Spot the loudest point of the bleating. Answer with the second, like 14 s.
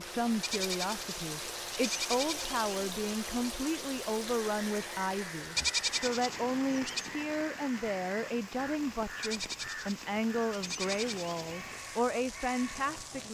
6 s.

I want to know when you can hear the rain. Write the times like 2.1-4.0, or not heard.
0.0-13.3.